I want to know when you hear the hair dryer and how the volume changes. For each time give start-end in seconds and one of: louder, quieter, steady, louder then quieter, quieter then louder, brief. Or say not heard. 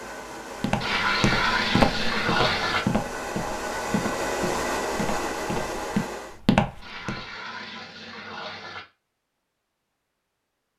0.0-6.4 louder.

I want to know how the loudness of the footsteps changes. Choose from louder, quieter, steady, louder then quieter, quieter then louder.
quieter then louder.